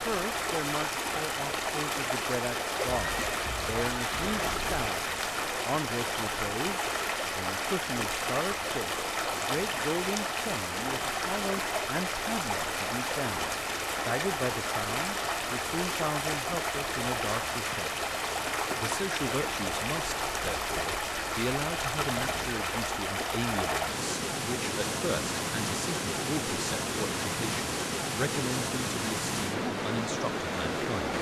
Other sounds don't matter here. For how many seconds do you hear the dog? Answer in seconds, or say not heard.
not heard.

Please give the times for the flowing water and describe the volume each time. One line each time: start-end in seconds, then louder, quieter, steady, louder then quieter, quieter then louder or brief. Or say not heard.
0.0-31.1 steady.